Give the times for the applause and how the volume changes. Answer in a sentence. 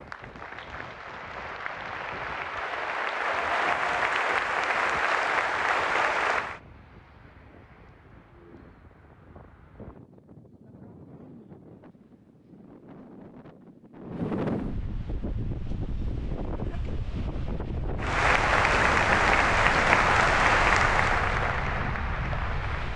You can hear the applause from 0.0 to 6.6 s, getting louder; and from 18.0 to 22.9 s, getting quieter.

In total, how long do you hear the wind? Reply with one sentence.
The wind can be heard for 23 seconds in total.